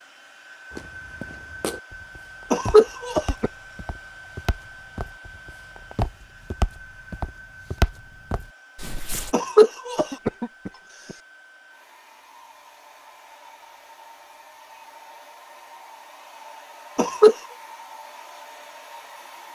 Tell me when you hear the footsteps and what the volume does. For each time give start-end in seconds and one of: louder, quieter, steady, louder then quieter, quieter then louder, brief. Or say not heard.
0.7-9.3 louder.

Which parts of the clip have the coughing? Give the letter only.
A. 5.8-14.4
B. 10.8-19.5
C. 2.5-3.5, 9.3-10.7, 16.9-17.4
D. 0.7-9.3
C.